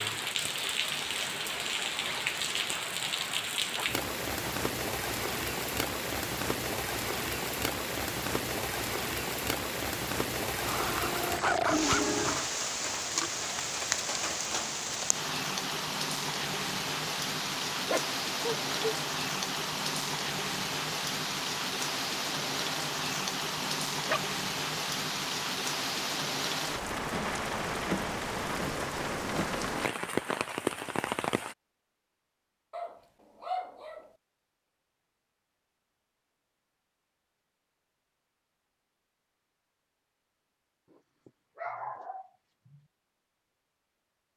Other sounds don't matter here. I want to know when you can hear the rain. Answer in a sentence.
The rain can be heard from 0.0 to 31.6 s.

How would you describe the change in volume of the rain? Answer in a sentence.
The loudness of the rain stays about the same.